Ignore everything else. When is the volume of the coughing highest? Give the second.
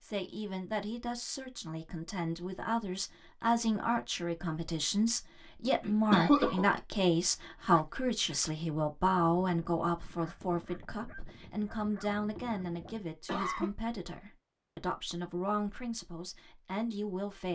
6 s.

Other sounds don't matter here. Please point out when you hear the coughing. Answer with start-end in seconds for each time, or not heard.
5.8-6.7, 12.3-13.7.